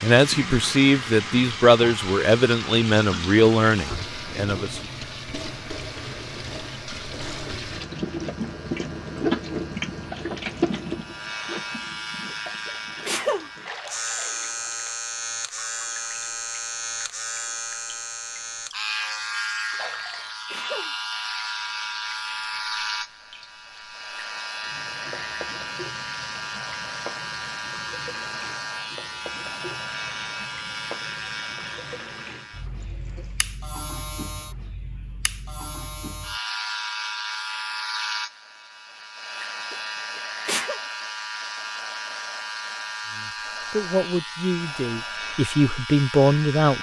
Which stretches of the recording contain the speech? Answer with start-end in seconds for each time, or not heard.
0.0-4.8, 43.1-46.7.